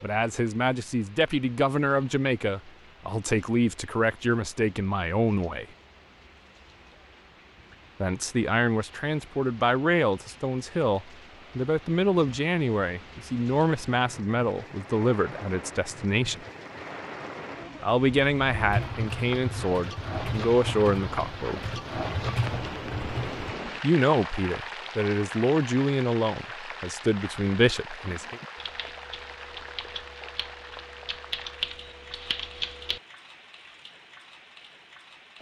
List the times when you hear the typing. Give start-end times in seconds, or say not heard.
18.6-23.6, 28.1-33.0.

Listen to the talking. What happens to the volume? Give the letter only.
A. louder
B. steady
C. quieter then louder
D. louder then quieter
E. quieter
B.